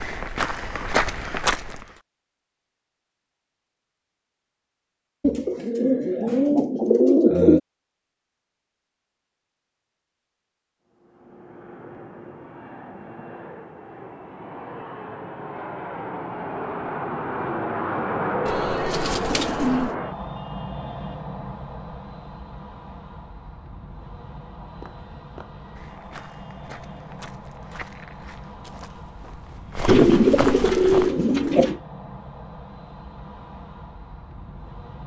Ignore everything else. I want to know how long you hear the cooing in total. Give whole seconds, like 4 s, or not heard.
6 s.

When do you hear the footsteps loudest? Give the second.
1 s.